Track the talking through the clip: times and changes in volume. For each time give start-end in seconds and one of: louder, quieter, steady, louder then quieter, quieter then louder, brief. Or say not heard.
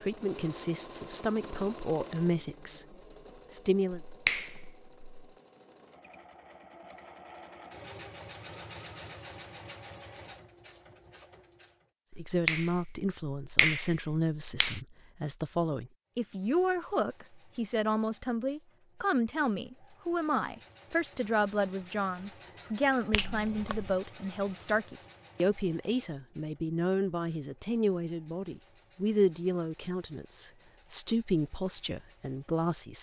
0.0-4.0 quieter
12.2-32.9 steady.